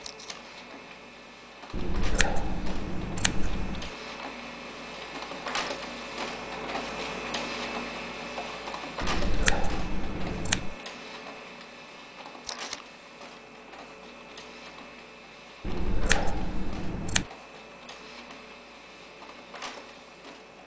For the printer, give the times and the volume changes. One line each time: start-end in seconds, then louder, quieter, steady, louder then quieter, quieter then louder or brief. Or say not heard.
0.0-20.6 louder then quieter.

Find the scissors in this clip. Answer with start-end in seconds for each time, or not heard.
1.7-3.9, 9.0-10.8, 15.6-17.2.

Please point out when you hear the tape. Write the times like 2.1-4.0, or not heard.
0.0-0.4, 12.4-12.8.